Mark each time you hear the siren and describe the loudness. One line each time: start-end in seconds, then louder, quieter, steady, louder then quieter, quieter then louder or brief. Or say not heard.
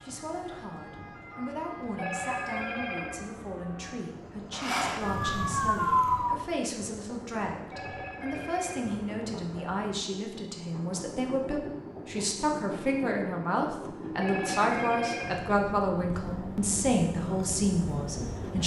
0.0-6.4 louder.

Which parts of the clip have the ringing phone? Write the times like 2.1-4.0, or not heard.
1.9-3.2, 7.7-8.9, 14.2-15.4.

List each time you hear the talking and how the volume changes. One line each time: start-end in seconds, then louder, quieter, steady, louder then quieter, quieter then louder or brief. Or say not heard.
0.0-18.6 louder.